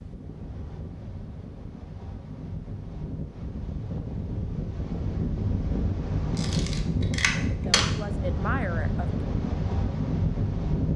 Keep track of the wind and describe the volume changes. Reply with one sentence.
The loudness of the wind goes up.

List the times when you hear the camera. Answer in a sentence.
The camera can be heard from 6.3 to 7.8 s.